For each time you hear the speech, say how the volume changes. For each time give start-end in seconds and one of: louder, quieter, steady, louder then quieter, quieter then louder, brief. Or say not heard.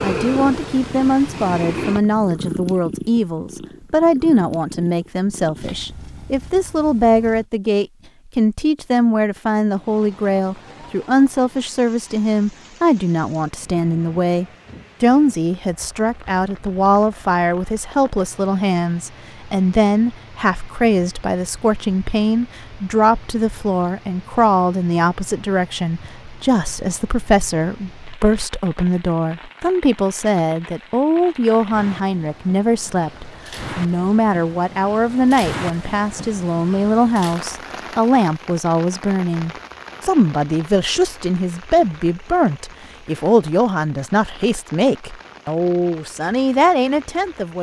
0.0-47.5 steady.